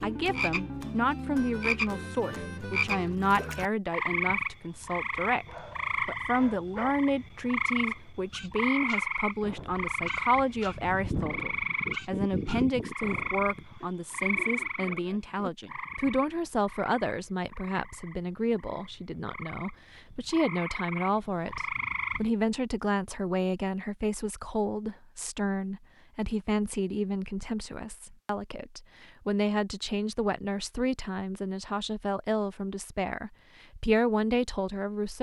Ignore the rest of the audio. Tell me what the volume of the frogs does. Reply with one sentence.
The loudness of the frogs goes down.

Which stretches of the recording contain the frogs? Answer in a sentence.
The frogs can be heard from 0.0 to 22.3 s.